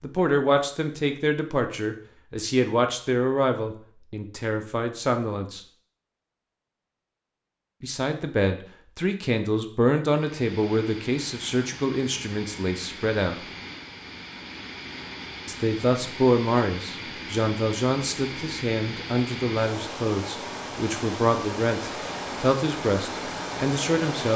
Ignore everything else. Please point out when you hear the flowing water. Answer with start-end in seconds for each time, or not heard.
10.2-24.3.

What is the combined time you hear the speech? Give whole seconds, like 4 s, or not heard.
20 s.